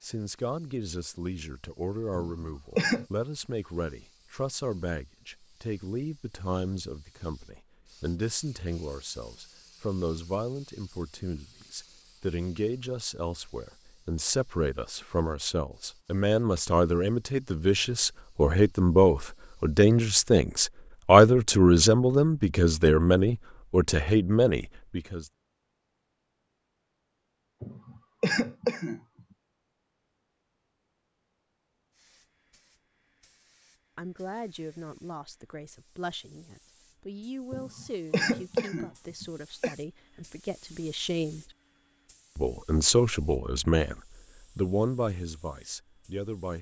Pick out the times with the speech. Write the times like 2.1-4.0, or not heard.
0.0-25.2, 34.0-41.5, 42.4-46.5.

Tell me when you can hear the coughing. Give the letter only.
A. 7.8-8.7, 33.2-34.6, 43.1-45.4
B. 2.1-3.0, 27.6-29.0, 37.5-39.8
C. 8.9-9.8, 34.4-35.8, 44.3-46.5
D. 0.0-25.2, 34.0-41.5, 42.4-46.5
B.